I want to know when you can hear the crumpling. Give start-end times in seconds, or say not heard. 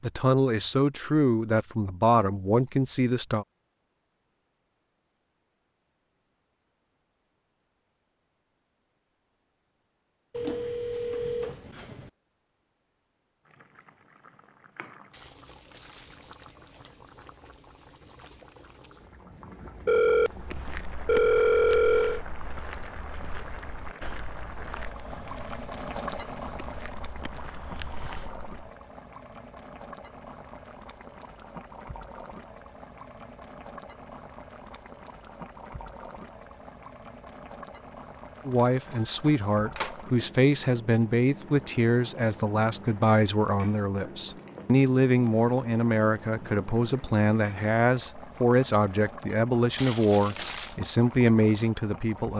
15.1-16.6, 49.8-50.8.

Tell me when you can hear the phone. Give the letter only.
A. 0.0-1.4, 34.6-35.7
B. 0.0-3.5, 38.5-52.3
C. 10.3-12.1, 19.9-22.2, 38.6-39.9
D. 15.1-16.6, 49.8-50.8
C.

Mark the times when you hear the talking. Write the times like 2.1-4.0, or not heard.
0.0-3.5, 38.5-52.3.